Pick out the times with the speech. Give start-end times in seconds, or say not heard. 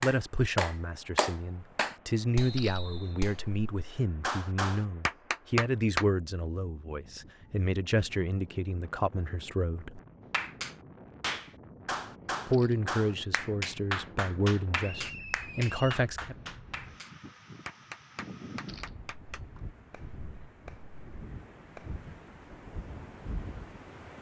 0.0-10.0, 12.4-16.4.